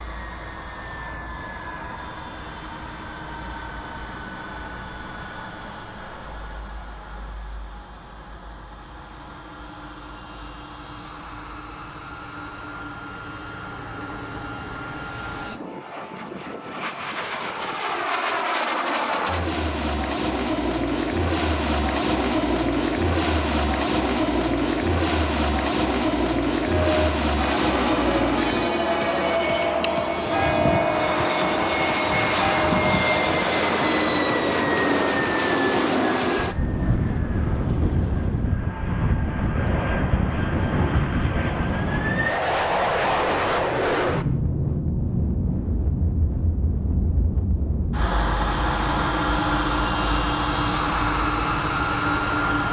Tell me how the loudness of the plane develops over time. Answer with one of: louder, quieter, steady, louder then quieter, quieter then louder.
louder.